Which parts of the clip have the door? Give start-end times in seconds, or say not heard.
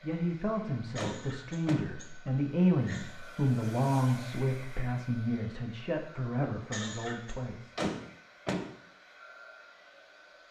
0.9-1.9, 7.8-8.7.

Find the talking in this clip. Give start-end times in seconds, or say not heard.
0.0-7.8.